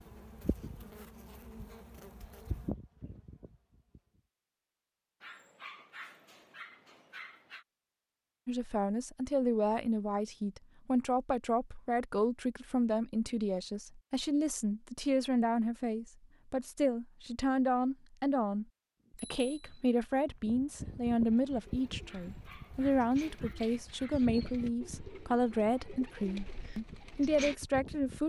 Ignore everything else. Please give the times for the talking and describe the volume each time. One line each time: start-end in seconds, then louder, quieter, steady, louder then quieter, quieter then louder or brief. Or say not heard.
8.4-28.2 steady.